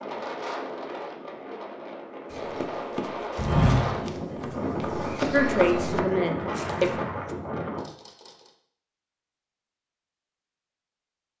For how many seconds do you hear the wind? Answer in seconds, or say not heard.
8 s.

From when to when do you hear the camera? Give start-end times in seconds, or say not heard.
7.8-8.6.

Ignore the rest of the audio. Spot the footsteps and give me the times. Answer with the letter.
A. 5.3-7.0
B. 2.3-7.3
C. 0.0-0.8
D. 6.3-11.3
B.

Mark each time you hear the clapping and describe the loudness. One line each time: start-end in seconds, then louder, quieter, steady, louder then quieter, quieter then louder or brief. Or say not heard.
not heard.